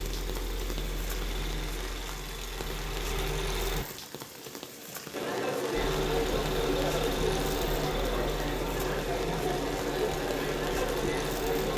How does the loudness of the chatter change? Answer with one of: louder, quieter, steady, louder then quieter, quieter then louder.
steady.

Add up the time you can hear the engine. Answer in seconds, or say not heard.
10 s.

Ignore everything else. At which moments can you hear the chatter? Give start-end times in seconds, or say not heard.
5.1-11.7.